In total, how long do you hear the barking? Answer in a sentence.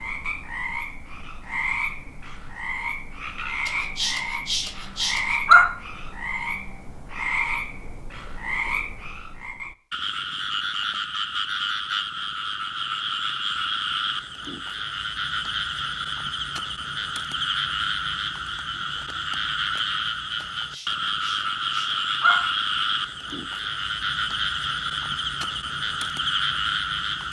You can hear the barking for 4 seconds altogether.